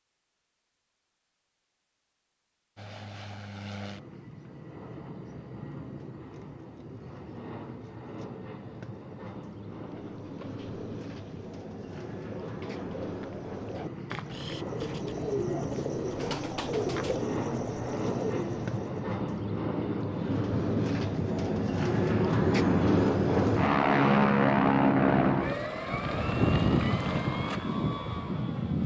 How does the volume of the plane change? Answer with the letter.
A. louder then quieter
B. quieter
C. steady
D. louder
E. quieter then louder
D.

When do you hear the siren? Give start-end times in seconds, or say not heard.
not heard.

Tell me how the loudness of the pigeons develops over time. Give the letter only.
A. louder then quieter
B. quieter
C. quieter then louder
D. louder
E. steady
D.